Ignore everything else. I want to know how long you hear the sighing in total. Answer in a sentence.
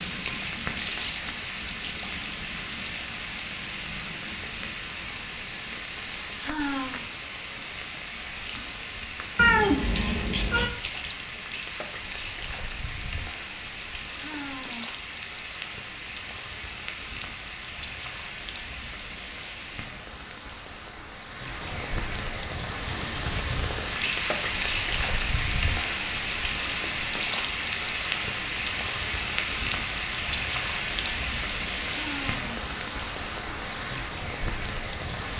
You can hear the sighing for 2 seconds altogether.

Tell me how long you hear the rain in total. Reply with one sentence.
You can hear the rain for 35 seconds altogether.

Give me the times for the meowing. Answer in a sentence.
You can hear the meowing from 9.3 to 10.7 s.